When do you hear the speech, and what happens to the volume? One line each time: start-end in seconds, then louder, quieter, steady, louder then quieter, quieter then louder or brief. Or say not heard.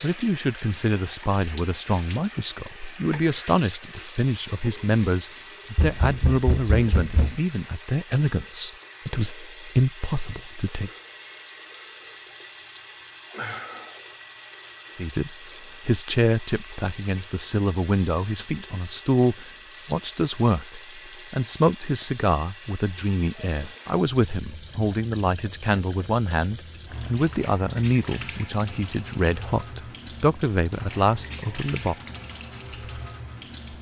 0.0-10.9 steady
14.9-31.9 steady.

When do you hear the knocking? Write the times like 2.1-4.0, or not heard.
5.8-7.4.